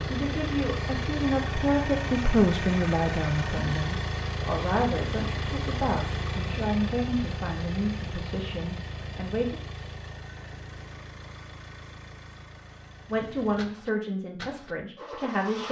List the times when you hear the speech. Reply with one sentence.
You can hear the speech from 0.1 to 9.6 s and from 13.1 to 15.6 s.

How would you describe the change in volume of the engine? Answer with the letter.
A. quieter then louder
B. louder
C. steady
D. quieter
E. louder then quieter
D.